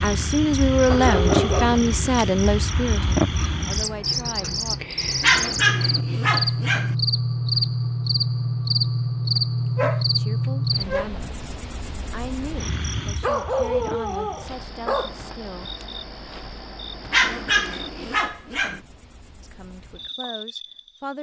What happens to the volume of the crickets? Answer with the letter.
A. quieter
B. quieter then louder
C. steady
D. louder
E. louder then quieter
A.